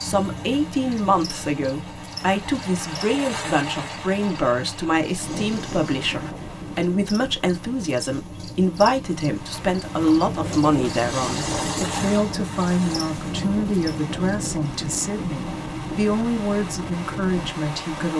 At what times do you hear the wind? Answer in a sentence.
The wind can be heard from 5.2 to 18.1 s.